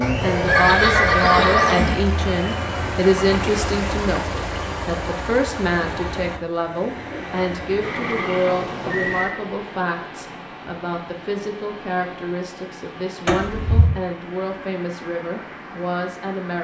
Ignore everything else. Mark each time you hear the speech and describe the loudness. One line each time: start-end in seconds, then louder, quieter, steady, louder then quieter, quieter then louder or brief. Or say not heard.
0.0-16.5 quieter.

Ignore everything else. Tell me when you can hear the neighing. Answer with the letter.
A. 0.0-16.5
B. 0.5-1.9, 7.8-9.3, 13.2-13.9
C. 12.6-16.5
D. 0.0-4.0
B.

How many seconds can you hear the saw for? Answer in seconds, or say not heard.
4 s.